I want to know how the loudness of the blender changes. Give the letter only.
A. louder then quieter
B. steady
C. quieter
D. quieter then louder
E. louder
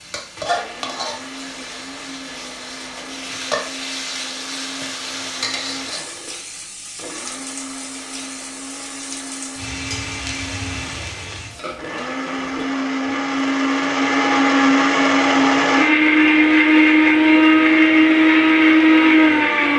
E.